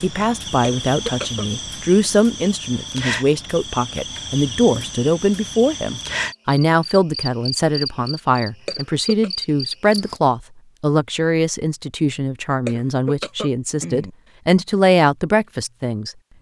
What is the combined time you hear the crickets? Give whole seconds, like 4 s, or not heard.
10 s.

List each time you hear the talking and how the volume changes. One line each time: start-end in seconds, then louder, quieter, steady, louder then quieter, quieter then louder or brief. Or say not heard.
0.0-16.1 steady.